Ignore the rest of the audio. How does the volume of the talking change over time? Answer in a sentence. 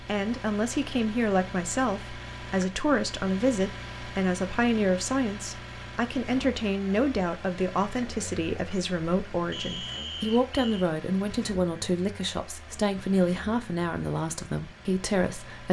The volume of the talking stays about the same.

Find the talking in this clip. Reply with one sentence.
The talking can be heard from 0.0 to 15.6 s.